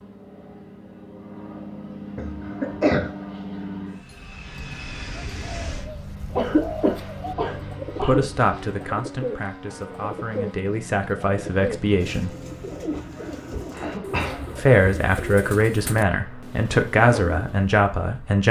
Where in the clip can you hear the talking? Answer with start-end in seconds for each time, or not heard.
8.0-12.3, 14.6-18.4.